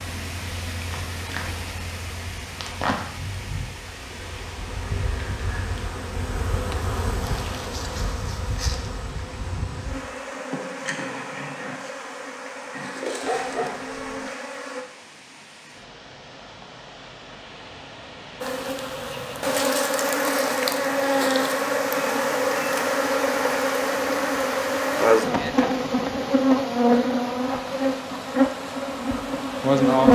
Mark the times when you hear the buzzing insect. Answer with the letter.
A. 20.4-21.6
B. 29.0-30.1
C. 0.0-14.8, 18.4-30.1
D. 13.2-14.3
C.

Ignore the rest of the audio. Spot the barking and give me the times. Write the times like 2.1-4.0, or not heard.
13.2-14.3.